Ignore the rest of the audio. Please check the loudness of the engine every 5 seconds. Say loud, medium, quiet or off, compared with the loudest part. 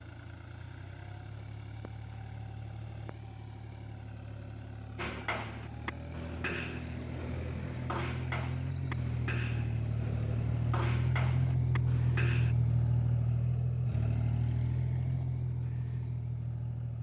quiet, medium, loud, medium.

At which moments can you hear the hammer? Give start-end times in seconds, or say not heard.
5.0-12.6.